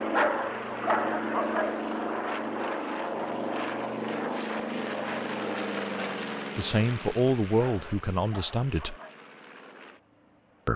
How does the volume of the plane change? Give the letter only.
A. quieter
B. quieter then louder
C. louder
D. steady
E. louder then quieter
A.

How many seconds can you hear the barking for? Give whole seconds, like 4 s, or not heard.
3 s.